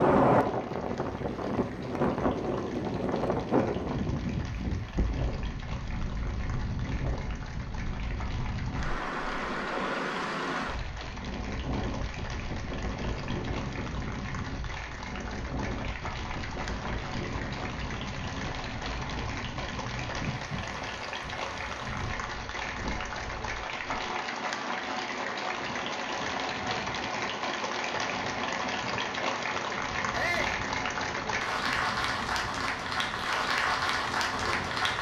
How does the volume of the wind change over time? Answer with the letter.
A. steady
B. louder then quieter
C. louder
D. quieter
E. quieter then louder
D.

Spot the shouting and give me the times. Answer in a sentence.
You can hear the shouting from 30.1 to 30.6 s.